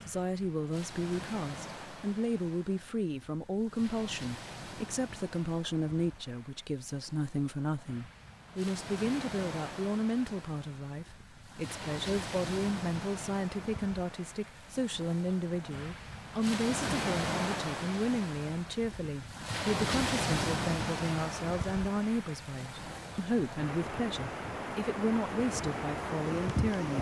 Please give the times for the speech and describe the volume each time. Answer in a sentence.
You can hear the speech from 0.1 to 26.9 s, at a steady volume.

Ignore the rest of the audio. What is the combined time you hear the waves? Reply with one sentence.
The waves can be heard for 27 seconds in total.